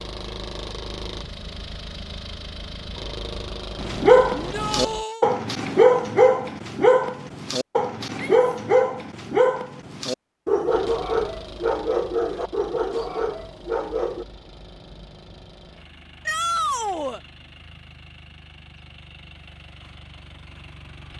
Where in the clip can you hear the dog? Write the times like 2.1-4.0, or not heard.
3.8-14.2.